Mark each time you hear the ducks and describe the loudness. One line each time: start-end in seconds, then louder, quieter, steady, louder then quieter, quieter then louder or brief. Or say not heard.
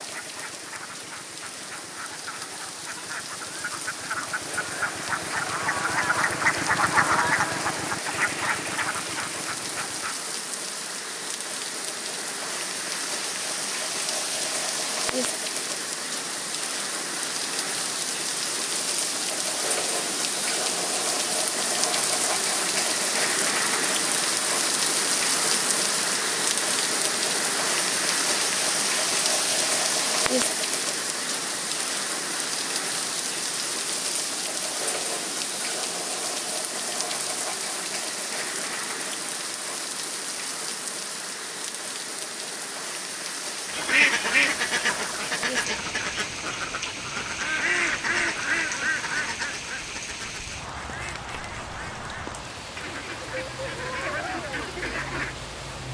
0.0-10.2 louder then quieter
43.6-55.4 quieter then louder.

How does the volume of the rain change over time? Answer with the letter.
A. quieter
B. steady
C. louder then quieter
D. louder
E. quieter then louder
C.